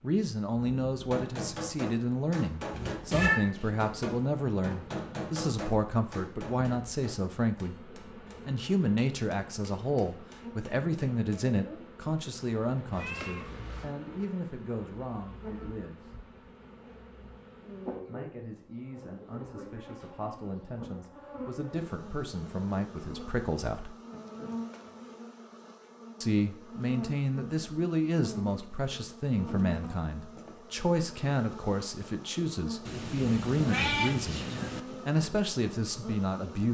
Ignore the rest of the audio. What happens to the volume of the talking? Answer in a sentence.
The loudness of the talking goes down, then up.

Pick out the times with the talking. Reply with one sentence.
The talking can be heard from 0.0 to 16.1 s, from 18.1 to 23.9 s and from 26.2 to 36.6 s.